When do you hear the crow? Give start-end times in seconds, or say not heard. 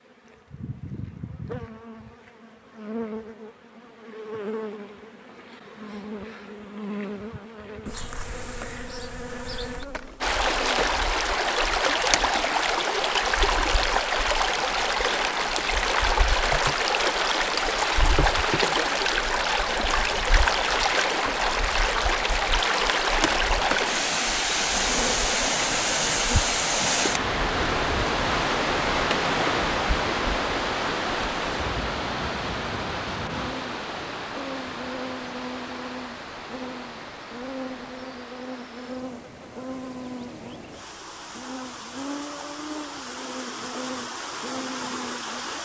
not heard.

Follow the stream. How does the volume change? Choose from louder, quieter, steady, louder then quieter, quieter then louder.
quieter.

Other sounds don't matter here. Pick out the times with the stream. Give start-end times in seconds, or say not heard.
10.2-45.6.